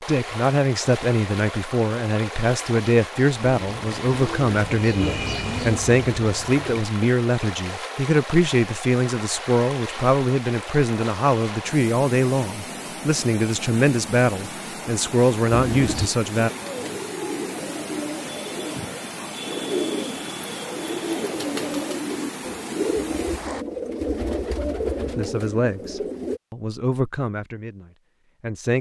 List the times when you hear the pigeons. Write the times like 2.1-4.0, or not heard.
3.5-6.9, 15.5-26.4.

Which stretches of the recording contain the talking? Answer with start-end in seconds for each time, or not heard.
0.1-16.5, 25.1-28.7.